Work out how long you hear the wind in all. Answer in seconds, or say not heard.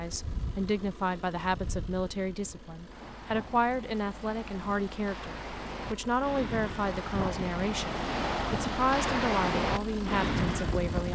11 s.